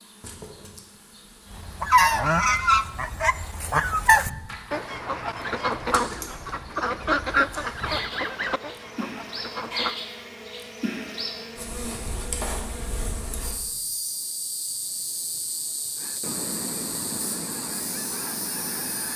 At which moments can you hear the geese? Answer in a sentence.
The geese can be heard from 1.5 to 9.9 s and from 15.9 to 19.1 s.